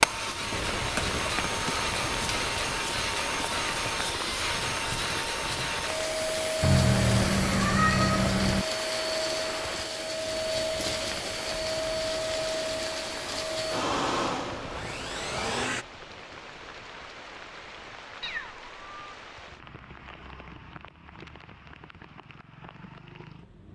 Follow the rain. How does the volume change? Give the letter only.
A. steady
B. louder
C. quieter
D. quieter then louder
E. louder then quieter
C.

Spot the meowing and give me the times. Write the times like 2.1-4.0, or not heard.
6.6-8.7, 18.2-19.0.